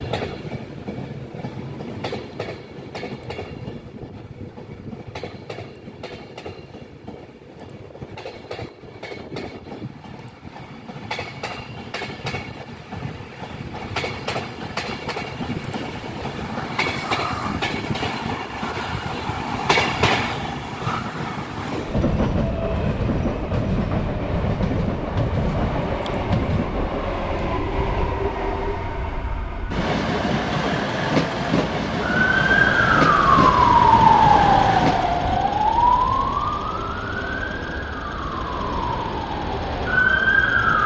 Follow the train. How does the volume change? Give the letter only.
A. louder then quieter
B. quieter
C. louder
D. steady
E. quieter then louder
C.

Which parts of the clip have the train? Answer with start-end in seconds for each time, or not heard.
0.0-35.3.